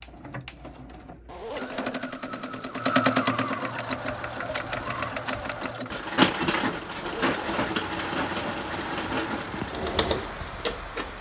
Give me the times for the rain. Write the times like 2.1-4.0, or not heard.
3.9-11.1.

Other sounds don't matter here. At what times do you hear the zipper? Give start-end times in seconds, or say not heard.
1.2-2.9, 7.0-7.7.